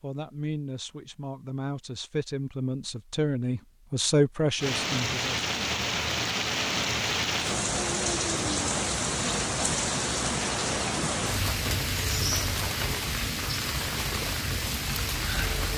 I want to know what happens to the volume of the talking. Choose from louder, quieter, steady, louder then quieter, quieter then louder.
louder.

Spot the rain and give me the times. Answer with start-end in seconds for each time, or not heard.
4.5-15.7.